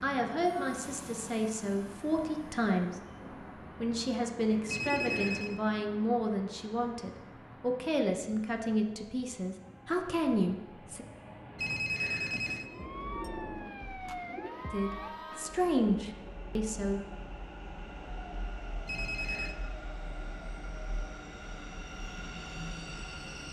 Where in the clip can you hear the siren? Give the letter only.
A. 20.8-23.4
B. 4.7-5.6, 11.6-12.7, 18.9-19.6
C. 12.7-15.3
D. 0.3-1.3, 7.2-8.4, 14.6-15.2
C.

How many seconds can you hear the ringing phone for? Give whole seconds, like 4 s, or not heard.
3 s.